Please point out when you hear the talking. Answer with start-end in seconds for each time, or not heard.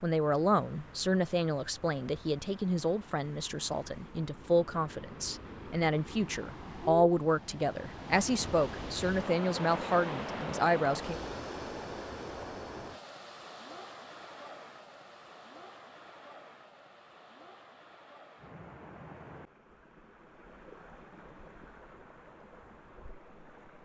0.0-11.2.